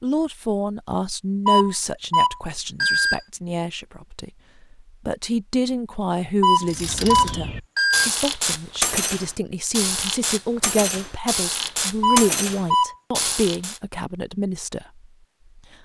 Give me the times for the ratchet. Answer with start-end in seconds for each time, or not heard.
6.7-13.8.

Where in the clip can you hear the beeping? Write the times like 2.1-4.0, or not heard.
1.4-3.2, 6.4-8.1, 12.0-12.9.